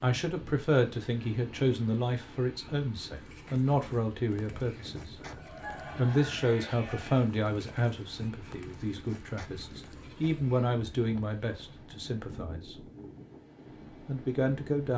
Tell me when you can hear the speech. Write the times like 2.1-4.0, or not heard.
0.0-5.2, 6.0-12.8, 14.1-14.9.